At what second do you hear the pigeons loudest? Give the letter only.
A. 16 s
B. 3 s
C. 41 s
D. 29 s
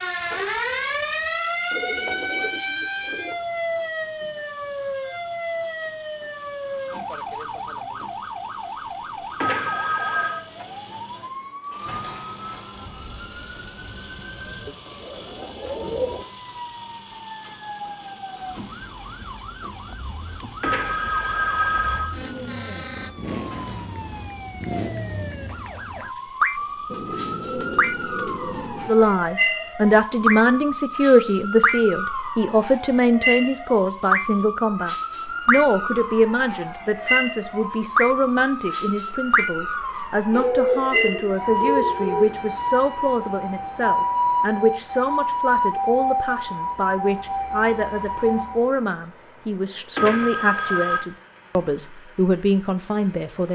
C.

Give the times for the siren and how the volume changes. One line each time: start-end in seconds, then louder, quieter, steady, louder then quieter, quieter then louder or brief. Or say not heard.
0.0-48.7 quieter then louder.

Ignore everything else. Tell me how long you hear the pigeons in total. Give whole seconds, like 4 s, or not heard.
7 s.